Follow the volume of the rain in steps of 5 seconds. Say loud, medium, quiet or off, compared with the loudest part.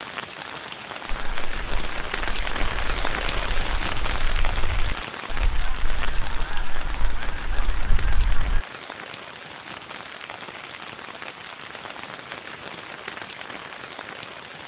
loud, medium, medium.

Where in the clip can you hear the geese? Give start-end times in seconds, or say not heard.
1.1-8.6.